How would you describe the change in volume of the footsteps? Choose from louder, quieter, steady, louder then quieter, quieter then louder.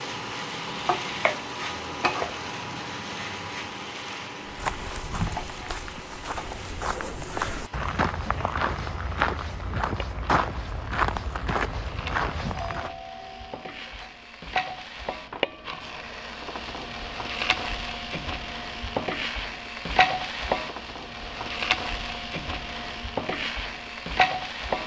louder.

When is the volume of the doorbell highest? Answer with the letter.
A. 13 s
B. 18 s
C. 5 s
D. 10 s
A.